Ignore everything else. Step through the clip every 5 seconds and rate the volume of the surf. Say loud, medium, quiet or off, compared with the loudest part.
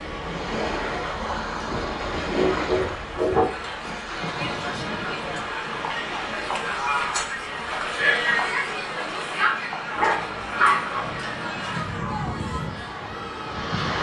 loud, medium, loud.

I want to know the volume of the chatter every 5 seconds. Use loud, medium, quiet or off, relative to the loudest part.
medium, loud, medium.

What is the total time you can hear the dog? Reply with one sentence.
You can hear the dog for 3 seconds altogether.